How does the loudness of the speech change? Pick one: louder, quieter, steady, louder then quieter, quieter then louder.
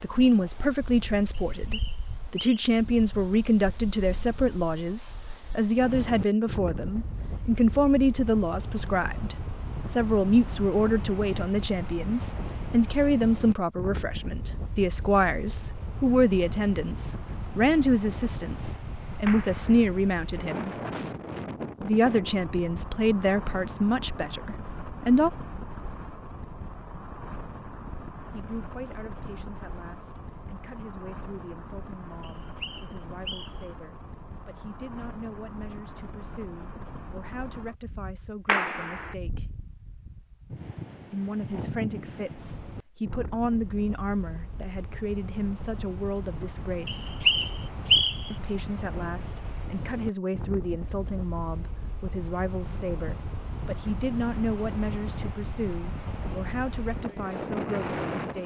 quieter.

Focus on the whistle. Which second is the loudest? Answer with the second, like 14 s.
48 s.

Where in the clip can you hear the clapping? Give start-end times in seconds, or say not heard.
19.2-19.9, 38.5-39.1.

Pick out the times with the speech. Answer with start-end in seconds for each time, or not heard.
0.0-20.7, 21.8-25.3, 28.3-39.5, 41.1-47.1, 48.3-58.4.